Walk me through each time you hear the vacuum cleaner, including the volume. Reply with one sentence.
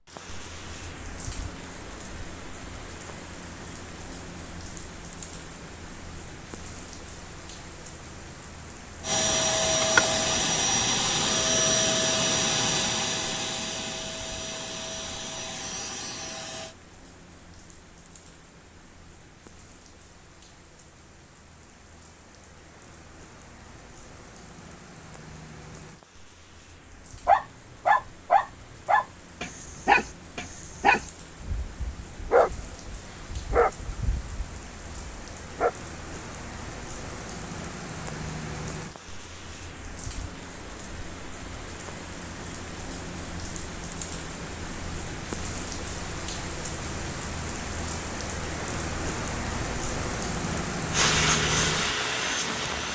You can hear the vacuum cleaner from 9.0 to 16.8 s, getting quieter; and briefly from 50.9 to 52.8 s.